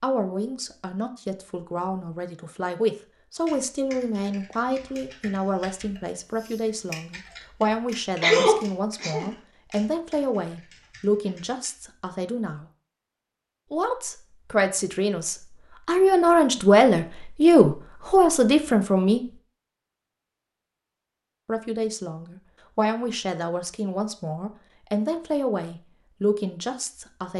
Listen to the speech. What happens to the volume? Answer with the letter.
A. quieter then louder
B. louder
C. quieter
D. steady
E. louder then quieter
E.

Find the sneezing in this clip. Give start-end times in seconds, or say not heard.
8.2-9.2.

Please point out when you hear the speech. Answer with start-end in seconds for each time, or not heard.
0.0-12.7, 13.7-19.2, 21.4-27.3.